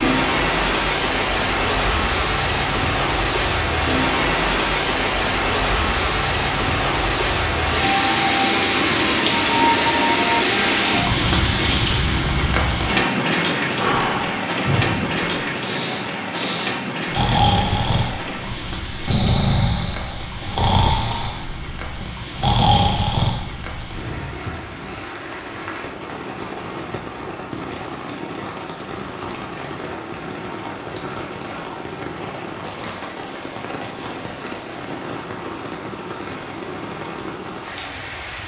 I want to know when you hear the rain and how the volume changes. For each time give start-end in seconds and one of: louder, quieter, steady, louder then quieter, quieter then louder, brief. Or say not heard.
0.0-38.4 quieter.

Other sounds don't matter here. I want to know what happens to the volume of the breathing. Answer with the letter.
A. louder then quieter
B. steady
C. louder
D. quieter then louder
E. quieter
C.